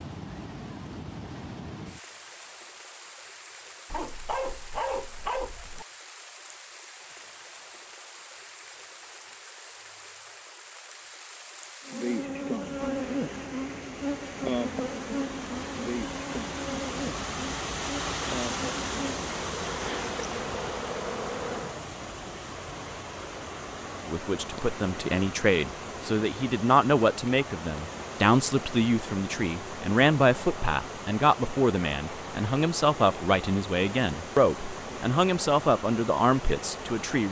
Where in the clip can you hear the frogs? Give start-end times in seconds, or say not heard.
not heard.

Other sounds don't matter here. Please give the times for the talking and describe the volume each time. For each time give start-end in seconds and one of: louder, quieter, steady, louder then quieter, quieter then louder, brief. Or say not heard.
24.1-37.2 steady.